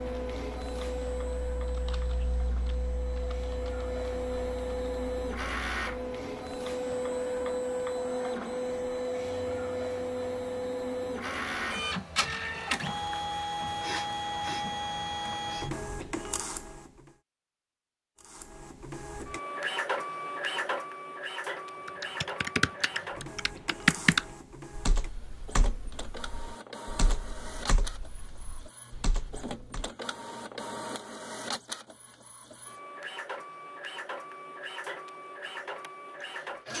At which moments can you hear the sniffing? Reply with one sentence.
The sniffing can be heard from 13.6 to 15.7 s.